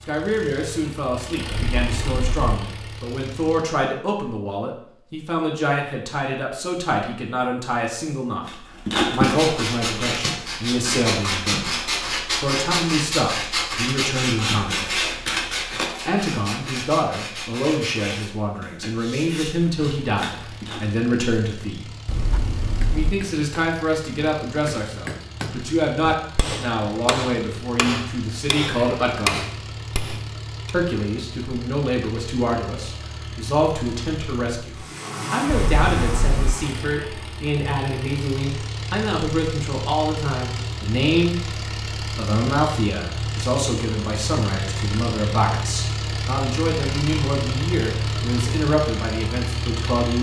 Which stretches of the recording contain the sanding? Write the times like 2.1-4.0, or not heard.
8.4-20.9.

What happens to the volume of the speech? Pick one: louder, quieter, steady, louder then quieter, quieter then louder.
steady.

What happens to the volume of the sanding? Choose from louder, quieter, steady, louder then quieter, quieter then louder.
quieter.